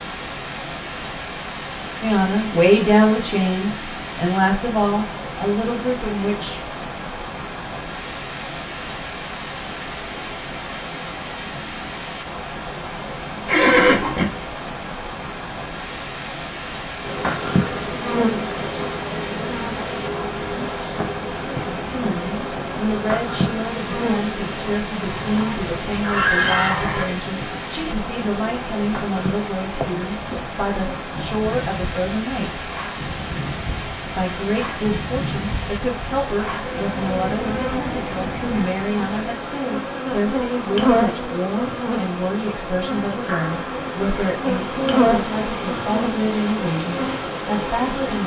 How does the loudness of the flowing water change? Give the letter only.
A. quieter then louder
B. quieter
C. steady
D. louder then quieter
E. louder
C.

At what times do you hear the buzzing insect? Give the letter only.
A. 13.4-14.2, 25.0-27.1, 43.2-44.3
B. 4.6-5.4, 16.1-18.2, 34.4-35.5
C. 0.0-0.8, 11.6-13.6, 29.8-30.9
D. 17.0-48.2
D.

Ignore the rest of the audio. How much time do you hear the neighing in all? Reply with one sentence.
You can hear the neighing for 4 seconds altogether.